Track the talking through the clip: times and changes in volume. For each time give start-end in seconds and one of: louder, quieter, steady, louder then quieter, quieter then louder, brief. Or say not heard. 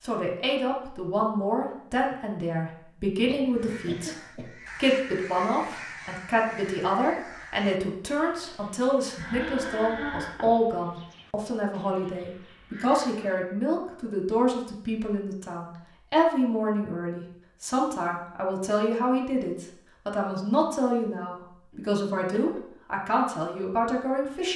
0.0-24.5 steady.